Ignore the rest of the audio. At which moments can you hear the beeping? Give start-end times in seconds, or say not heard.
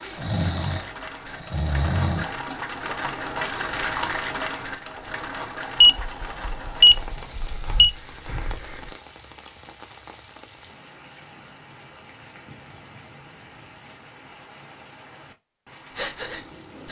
5.8-7.9.